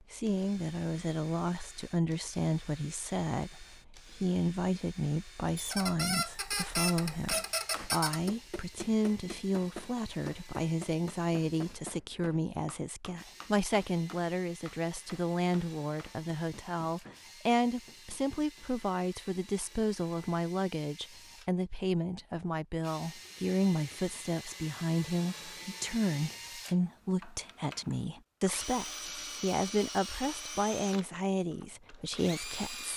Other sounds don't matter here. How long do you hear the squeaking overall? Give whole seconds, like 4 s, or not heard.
3 s.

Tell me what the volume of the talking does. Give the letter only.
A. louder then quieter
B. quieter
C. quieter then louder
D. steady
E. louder
D.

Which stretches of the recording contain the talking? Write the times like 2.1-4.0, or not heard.
0.1-32.9.